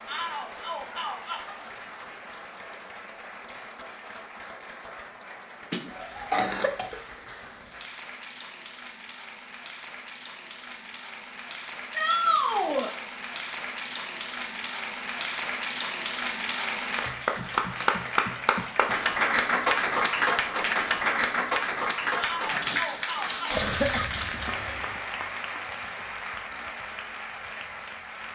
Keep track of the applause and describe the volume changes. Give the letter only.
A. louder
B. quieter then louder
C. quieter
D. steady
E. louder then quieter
E.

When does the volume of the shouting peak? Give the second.
12 s.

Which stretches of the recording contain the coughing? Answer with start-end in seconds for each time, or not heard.
5.7-7.0, 23.4-25.0.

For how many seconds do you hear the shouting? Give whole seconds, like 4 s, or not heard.
4 s.